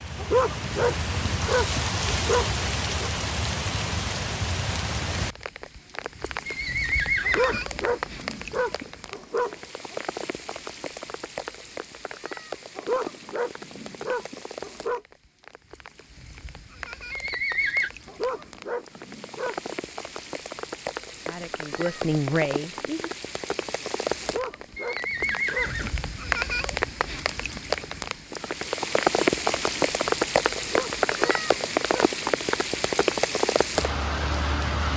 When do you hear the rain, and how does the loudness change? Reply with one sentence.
The rain can be heard from 0.0 to 34.9 s, getting quieter then louder.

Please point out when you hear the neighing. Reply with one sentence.
The neighing can be heard from 6.5 to 7.6 s, from 17.1 to 17.9 s and from 24.8 to 25.9 s.